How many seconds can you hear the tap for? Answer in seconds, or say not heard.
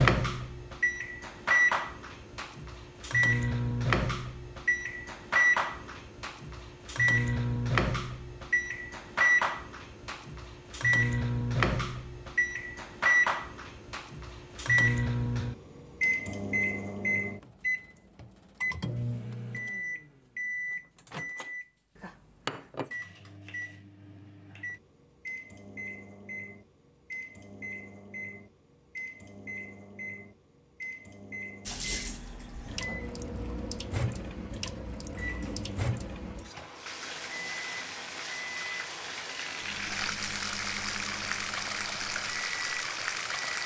12 s.